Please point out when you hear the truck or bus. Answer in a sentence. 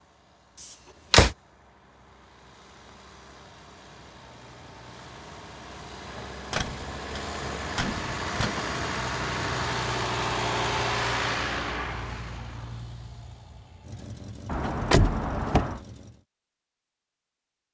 You can hear the truck or bus from 0.0 to 16.2 s.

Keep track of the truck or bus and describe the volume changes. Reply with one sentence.
The volume of the truck or bus goes up, then down.